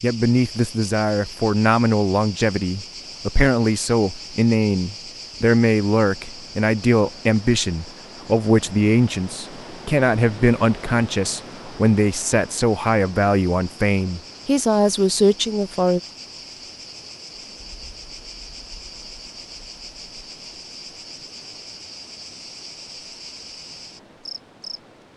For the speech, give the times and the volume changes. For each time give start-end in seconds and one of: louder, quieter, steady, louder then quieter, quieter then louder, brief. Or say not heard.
0.0-16.0 steady.